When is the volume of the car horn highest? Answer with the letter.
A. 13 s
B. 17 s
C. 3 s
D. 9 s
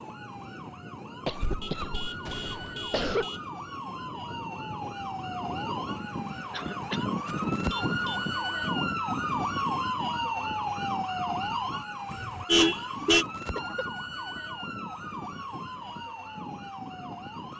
A.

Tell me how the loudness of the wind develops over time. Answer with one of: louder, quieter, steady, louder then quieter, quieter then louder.
louder then quieter.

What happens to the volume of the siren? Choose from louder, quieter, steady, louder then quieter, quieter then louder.
louder then quieter.